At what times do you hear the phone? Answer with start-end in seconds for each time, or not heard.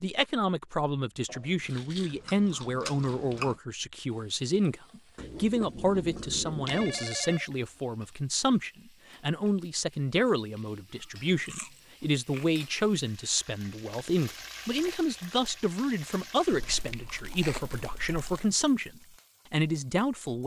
6.7-7.5.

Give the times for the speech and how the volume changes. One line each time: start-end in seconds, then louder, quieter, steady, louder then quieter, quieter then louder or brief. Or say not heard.
0.0-20.4 steady.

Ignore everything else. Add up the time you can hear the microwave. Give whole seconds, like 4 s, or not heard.
not heard.